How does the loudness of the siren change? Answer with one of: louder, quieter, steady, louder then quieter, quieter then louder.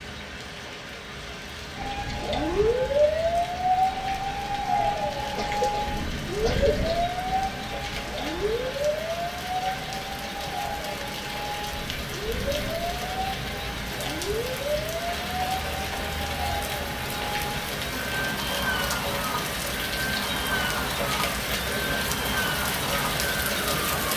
quieter.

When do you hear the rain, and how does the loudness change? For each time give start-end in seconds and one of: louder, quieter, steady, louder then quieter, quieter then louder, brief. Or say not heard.
0.0-24.1 louder.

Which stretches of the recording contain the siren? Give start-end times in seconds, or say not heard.
1.8-24.1.